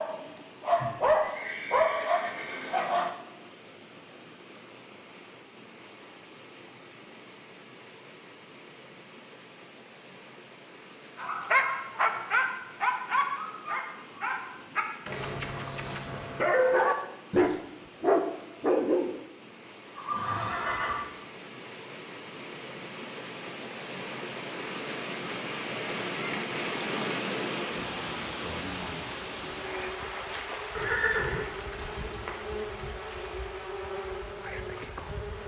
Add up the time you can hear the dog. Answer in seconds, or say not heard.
11 s.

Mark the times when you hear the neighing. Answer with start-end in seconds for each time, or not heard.
0.8-2.8, 19.9-21.0, 30.8-32.3.